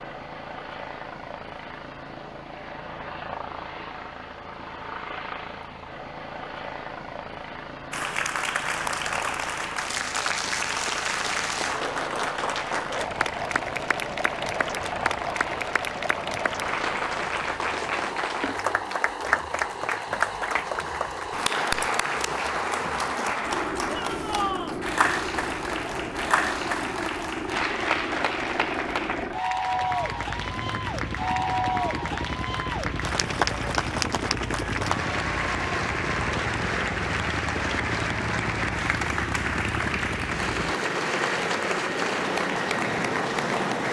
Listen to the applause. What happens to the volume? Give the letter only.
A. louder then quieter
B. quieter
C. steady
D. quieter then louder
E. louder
C.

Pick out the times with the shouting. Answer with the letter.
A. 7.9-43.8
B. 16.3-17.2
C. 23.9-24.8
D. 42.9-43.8
C.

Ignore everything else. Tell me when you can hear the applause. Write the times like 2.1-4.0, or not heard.
7.9-43.8.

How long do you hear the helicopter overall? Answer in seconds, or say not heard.
44 s.